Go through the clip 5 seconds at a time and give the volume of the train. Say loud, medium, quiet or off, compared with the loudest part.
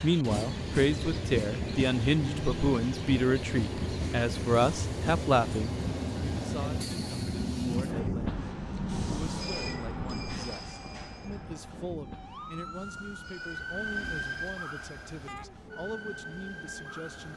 loud, loud, medium, quiet.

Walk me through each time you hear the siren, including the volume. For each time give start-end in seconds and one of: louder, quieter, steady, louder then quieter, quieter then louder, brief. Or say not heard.
11.9-17.3 louder then quieter.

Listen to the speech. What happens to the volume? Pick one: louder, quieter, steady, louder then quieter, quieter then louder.
quieter.